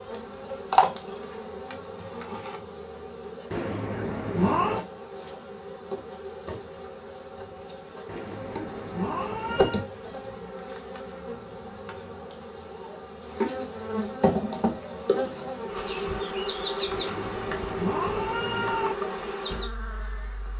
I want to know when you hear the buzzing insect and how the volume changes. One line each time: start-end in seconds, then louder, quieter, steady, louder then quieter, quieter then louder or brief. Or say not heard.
0.0-20.5 quieter then louder.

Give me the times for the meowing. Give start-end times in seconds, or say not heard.
3.5-4.8, 8.1-9.8, 16.9-18.9.